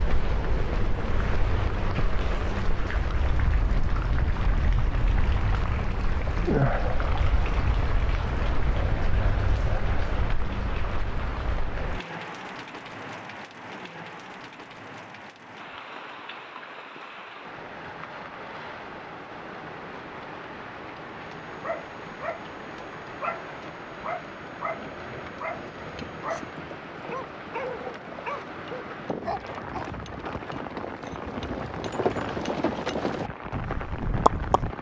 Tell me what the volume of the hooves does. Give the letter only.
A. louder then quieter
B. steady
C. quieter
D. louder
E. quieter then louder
D.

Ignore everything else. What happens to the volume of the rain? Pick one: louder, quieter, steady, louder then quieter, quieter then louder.
quieter.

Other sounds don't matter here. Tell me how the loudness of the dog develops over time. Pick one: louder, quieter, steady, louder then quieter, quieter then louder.
steady.